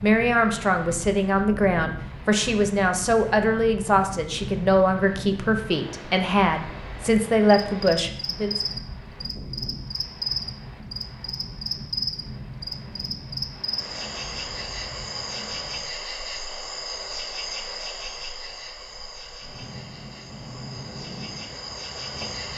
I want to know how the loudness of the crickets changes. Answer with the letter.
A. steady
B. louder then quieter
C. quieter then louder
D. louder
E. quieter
E.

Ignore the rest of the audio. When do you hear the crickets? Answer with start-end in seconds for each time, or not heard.
7.5-22.5.